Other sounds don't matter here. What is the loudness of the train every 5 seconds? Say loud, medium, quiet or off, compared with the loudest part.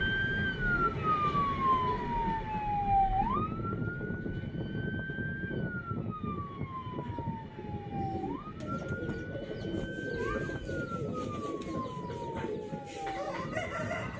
loud, loud, medium.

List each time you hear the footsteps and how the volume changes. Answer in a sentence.
The footsteps can't be heard in this clip.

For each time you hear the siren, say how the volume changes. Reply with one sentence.
You can hear the siren from 0.0 to 14.1 s, getting quieter.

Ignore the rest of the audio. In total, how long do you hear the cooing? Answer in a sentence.
You can hear the cooing for 6 seconds altogether.